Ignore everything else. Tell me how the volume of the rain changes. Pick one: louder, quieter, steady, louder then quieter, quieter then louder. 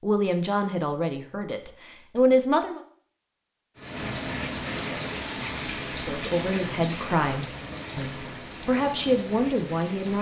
quieter.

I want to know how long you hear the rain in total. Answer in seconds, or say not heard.
6 s.